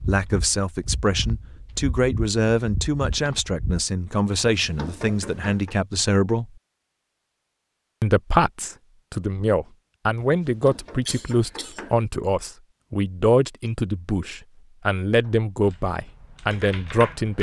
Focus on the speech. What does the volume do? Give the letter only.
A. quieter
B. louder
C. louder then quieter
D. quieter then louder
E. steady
E.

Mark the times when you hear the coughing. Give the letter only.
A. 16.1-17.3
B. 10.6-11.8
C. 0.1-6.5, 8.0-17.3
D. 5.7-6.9
B.